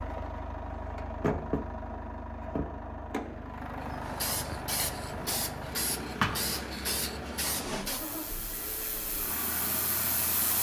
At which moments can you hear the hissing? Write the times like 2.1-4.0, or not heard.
3.8-10.5.